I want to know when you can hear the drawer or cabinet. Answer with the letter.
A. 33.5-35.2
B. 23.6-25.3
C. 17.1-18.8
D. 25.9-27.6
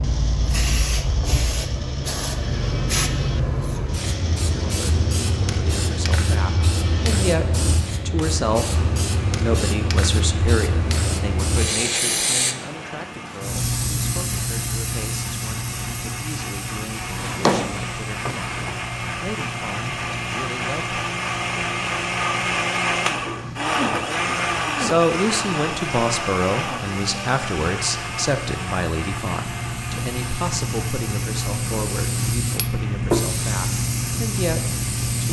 C.